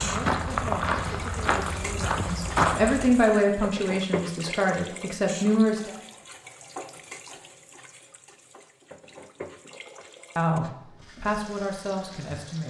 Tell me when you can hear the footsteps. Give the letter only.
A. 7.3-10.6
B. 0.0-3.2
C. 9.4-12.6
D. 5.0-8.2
B.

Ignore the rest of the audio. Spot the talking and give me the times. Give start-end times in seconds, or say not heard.
0.0-5.9, 10.3-12.6.